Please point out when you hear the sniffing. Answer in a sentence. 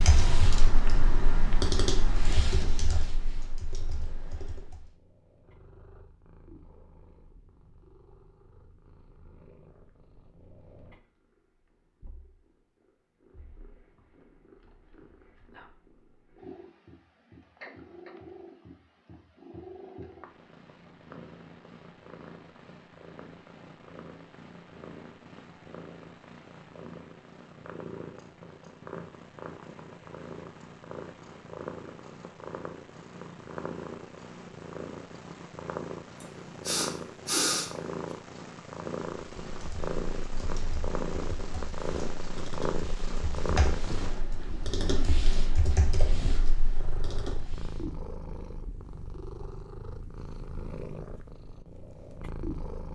The sniffing can be heard from 36.2 to 37.7 s.